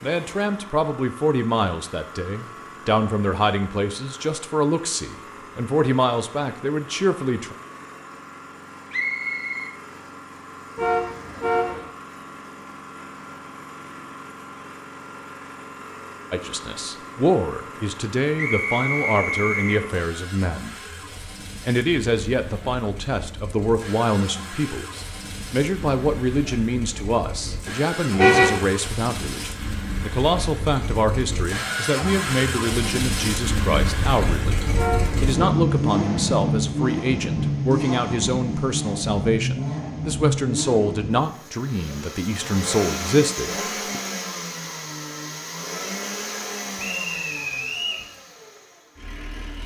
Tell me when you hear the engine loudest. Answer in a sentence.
The volume of the engine peaks at 36 seconds.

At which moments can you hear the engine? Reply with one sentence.
You can hear the engine from 0.0 to 49.6 s.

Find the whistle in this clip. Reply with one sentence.
You can hear the whistle from 8.9 to 9.8 s, from 18.4 to 19.8 s and from 46.8 to 48.0 s.